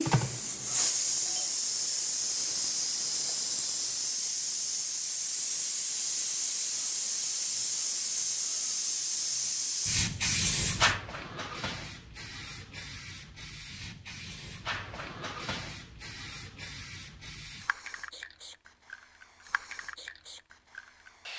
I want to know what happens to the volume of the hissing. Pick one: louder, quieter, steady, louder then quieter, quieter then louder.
quieter.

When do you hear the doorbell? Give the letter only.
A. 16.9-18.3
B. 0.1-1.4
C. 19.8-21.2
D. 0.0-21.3
B.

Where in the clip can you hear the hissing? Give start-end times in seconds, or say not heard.
0.0-21.3.